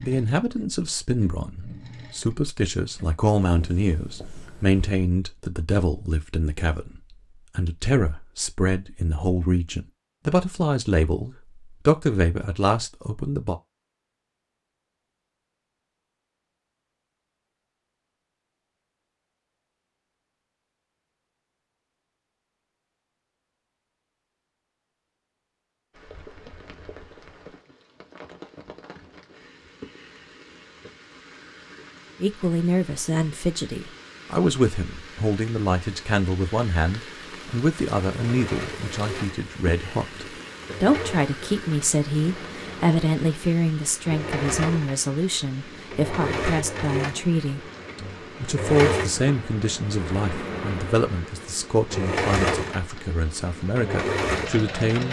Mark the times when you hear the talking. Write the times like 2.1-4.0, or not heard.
0.0-13.6, 32.2-55.0.